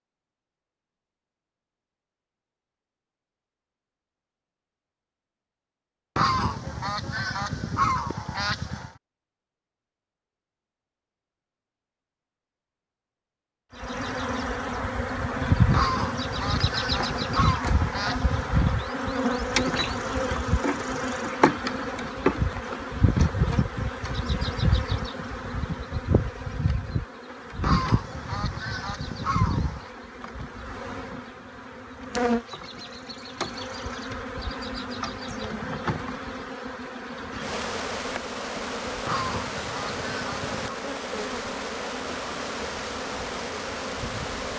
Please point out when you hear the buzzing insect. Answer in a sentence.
The buzzing insect can be heard from 13.8 to 44.5 s.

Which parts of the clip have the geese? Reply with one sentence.
You can hear the geese from 6.2 to 8.9 s, from 15.7 to 18.6 s, from 27.6 to 29.9 s and from 39.0 to 40.8 s.